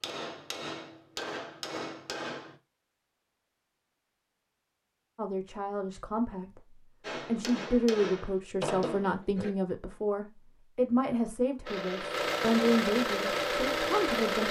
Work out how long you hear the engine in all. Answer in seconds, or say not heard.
3 s.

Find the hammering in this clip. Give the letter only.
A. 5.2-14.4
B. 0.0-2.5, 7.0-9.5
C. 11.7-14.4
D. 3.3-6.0
B.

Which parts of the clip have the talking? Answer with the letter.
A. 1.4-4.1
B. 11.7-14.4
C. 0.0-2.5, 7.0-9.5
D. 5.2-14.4
D.